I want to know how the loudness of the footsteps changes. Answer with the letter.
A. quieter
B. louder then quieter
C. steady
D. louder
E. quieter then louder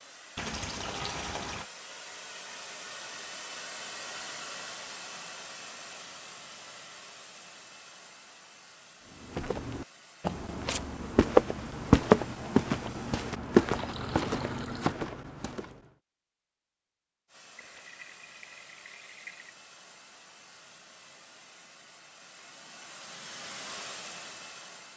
B.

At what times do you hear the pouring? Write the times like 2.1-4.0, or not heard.
0.3-1.7, 13.7-14.9, 17.6-19.6.